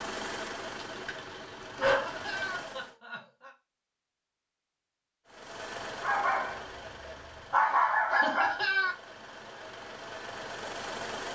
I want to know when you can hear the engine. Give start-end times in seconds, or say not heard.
0.0-3.0, 5.2-11.3.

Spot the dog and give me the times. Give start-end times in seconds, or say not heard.
0.8-2.6, 6.0-8.6.